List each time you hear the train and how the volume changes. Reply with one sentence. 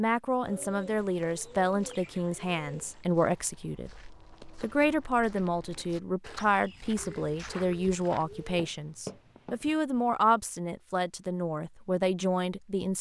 You can't hear the train here.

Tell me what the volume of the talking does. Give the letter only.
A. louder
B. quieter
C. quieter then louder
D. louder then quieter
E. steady
E.